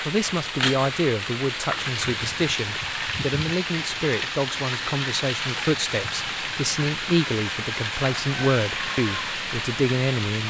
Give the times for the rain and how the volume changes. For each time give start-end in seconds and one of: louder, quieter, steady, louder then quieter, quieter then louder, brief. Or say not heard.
0.0-10.4 steady.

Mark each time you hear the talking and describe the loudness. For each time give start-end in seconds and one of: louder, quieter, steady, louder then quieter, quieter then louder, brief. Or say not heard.
0.1-10.4 steady.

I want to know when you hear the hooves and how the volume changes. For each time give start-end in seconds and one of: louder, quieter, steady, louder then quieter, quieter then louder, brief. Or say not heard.
not heard.